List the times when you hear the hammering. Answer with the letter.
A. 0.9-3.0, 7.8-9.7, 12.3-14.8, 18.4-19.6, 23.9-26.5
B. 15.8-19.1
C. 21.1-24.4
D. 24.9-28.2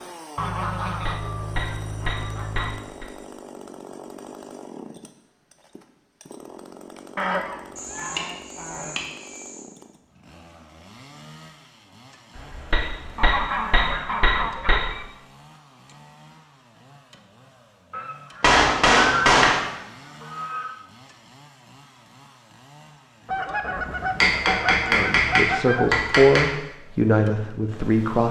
A.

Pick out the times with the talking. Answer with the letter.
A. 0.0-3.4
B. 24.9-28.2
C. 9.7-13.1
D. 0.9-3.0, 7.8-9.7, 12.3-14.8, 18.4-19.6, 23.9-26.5
B.